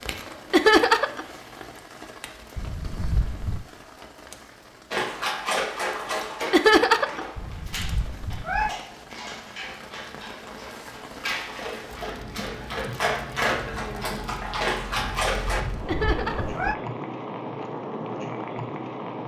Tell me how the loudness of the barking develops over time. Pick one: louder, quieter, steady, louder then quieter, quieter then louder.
quieter then louder.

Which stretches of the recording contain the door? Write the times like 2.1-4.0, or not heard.
not heard.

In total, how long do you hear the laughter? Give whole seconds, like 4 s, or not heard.
2 s.